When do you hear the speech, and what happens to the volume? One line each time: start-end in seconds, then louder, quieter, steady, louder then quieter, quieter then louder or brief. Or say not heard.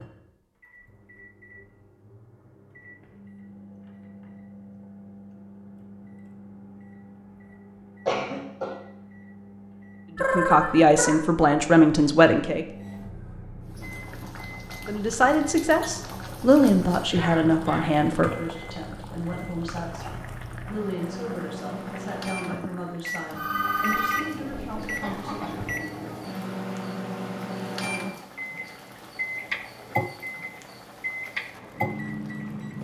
10.2-12.7 brief
14.8-25.6 quieter.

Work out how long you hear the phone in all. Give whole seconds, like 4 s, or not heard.
2 s.